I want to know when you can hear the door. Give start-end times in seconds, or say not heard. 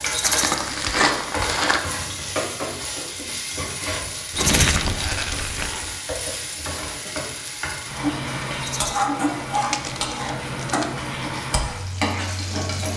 not heard.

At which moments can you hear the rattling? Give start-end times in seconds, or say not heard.
0.1-0.6, 4.3-4.8, 8.6-9.1.